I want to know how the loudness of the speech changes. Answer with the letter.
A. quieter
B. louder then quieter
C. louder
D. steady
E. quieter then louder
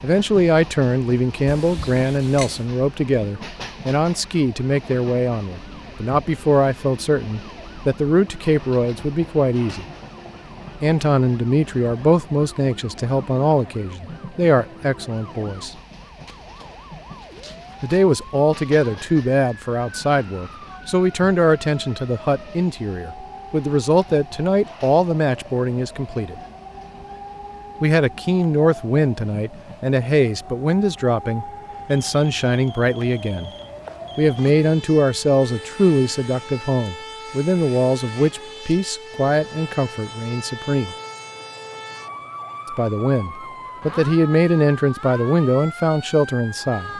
D.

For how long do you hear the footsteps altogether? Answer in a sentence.
The footsteps can't be heard in this clip.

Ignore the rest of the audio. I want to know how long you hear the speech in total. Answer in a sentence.
You can hear the speech for 40 seconds altogether.